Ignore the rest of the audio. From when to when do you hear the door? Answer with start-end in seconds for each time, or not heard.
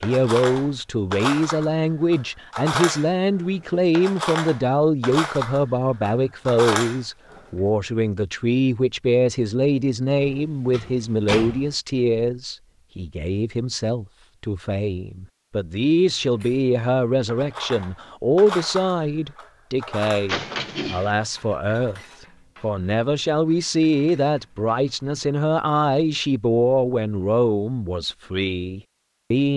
10.2-11.8, 20.2-21.1.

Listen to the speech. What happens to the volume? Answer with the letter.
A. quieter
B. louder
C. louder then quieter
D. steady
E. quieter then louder
D.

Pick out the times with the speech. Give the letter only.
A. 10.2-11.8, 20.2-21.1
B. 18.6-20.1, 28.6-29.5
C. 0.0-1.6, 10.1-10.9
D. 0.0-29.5
D.